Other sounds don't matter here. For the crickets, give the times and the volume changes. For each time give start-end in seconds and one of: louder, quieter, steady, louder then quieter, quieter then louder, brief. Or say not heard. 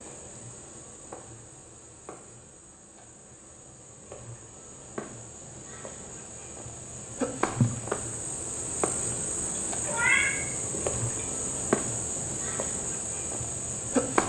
0.0-14.2 louder.